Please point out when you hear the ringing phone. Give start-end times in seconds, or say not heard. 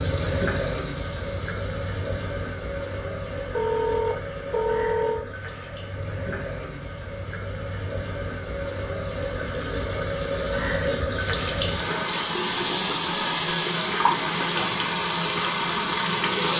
3.5-5.2, 13.1-13.5.